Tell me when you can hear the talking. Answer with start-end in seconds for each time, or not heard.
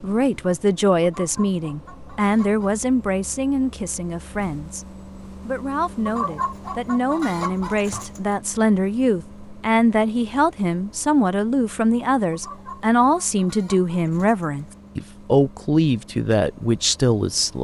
0.0-17.5.